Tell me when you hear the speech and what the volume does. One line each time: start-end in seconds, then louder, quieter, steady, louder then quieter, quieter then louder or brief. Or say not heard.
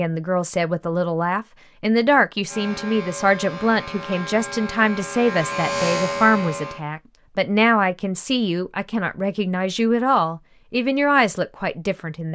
0.0-12.2 steady.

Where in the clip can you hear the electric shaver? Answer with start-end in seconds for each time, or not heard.
2.5-6.8.